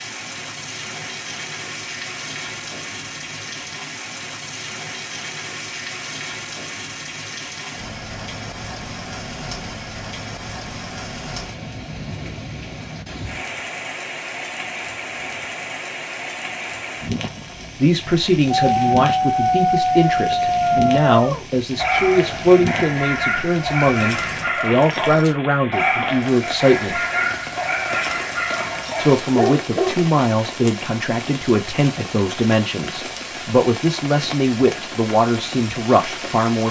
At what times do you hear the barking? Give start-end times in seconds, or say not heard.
18.7-29.9.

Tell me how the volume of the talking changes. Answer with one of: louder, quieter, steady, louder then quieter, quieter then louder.
steady.